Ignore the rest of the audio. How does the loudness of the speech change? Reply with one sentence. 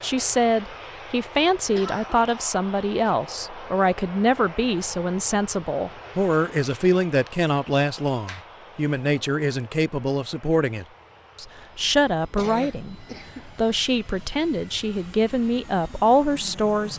The volume of the speech stays about the same.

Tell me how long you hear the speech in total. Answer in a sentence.
The speech can be heard for 17 seconds in total.